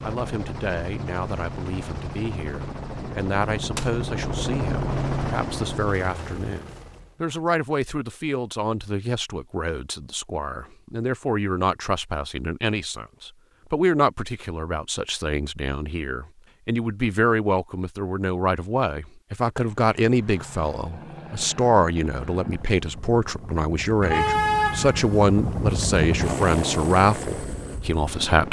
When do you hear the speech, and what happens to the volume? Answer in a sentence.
You can hear the speech from 0.0 to 28.4 s, getting louder.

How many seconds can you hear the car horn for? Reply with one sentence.
You can hear the car horn for 2 seconds altogether.